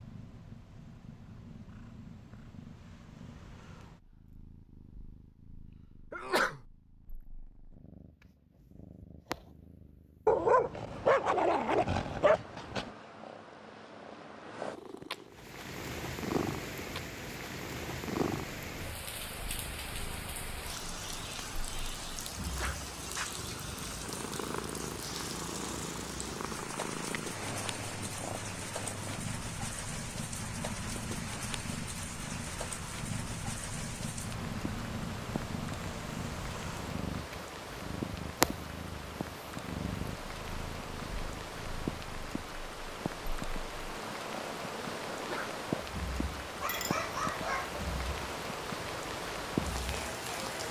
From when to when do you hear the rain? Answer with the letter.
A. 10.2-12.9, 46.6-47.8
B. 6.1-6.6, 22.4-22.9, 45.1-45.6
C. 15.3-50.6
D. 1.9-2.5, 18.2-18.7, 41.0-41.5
C.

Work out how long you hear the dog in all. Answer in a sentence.
You can hear the dog for 4 seconds altogether.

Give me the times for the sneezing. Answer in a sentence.
The sneezing can be heard from 6.1 to 6.6 s, from 22.4 to 22.9 s and from 45.1 to 45.6 s.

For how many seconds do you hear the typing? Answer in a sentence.
The typing can't be heard in this clip.